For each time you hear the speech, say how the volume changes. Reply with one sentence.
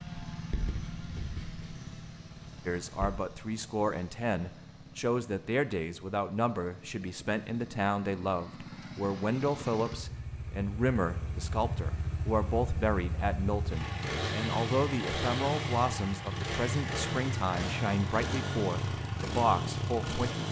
The speech can be heard from 2.6 to 20.4 s, at a steady volume.